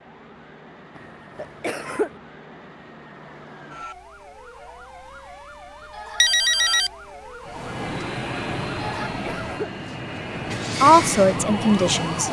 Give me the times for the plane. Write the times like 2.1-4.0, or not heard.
7.5-12.2.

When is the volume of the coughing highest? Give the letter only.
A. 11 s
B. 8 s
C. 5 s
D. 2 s
D.